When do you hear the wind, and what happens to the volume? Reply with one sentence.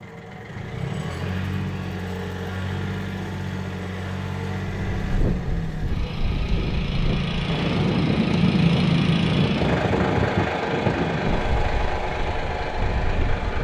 You can hear the wind from 4.8 to 13.5 s, getting louder then quieter.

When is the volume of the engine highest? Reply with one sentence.
The volume of the engine peaks at 9 seconds.